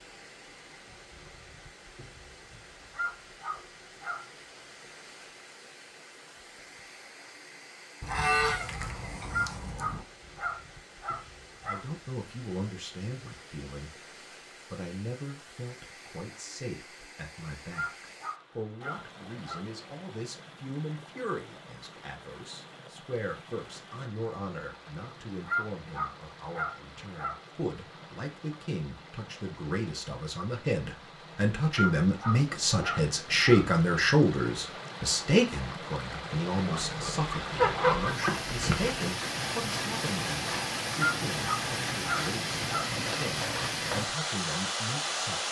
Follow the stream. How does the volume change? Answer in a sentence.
The loudness of the stream goes up.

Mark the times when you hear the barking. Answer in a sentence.
You can hear the barking from 2.9 to 4.2 s, from 9.3 to 11.8 s, from 17.7 to 19.6 s, from 25.4 to 27.4 s, from 31.7 to 33.6 s and from 41.0 to 42.9 s.